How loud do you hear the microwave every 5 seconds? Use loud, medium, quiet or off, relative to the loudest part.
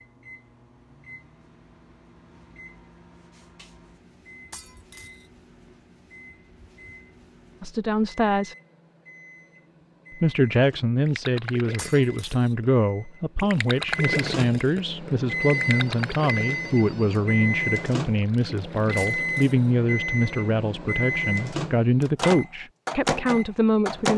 quiet, quiet, medium, loud, loud.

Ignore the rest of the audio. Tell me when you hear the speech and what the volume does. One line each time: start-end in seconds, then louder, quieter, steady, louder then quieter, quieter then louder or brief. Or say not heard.
7.6-8.6 brief
10.2-24.1 steady.